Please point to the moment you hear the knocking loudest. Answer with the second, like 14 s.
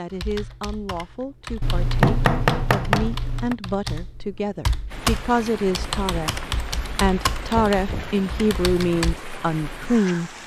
2 s.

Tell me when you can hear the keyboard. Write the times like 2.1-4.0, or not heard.
0.1-9.2.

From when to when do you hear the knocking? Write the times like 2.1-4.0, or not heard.
1.6-3.5, 7.5-8.2.